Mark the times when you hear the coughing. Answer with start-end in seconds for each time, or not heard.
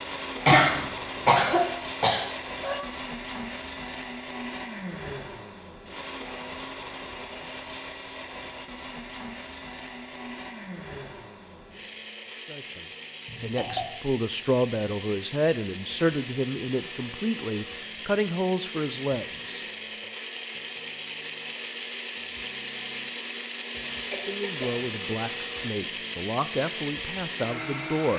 0.5-2.8, 13.2-13.9, 24.1-24.8.